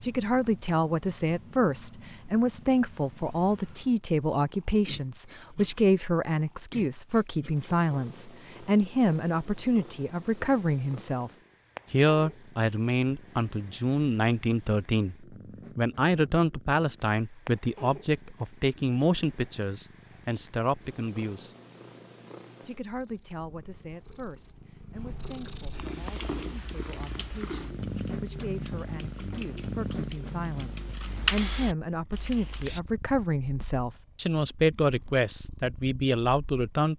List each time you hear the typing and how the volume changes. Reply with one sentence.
You can hear the typing from 26.2 to 32.8 s, getting louder.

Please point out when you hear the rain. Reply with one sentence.
The rain can't be heard in this clip.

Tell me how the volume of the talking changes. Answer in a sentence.
The loudness of the talking goes down, then up.